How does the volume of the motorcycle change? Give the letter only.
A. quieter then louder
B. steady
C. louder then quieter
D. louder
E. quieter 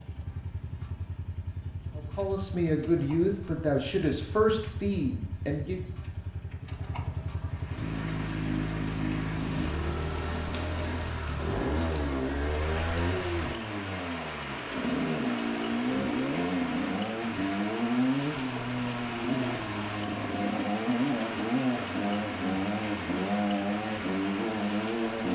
D.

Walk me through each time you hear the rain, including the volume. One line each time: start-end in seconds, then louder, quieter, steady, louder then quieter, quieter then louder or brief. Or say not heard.
7.5-25.3 steady.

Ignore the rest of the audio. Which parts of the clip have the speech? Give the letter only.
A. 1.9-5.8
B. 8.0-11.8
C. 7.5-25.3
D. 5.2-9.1
A.